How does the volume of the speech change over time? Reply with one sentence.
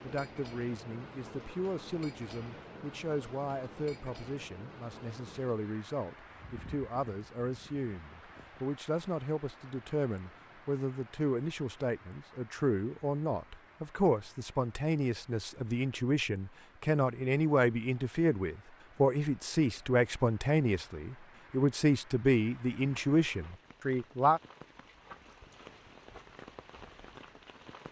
The loudness of the speech goes up.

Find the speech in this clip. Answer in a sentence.
The speech can be heard from 0.0 to 24.4 s.